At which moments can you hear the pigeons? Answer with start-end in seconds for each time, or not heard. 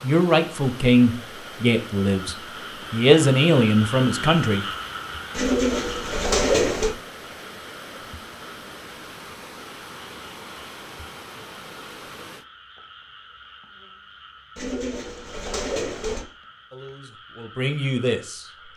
5.3-7.0, 14.6-16.2.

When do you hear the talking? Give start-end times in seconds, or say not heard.
0.0-4.7, 16.7-18.4.